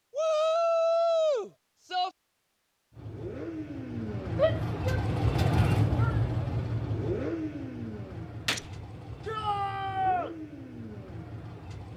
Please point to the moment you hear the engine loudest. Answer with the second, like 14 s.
6 s.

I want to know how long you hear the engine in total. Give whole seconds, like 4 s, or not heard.
9 s.